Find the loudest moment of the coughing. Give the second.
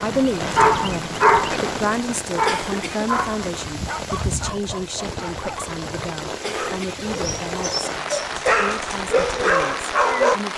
3 s.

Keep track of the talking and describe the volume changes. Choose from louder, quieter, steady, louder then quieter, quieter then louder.
quieter.